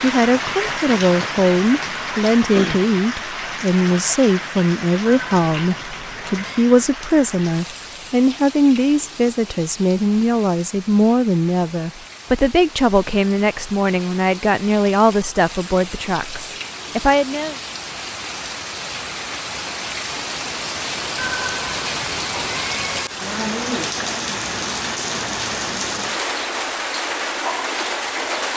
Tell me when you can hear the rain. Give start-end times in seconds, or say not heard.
0.0-28.5.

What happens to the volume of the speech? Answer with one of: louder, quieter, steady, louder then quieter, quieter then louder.
steady.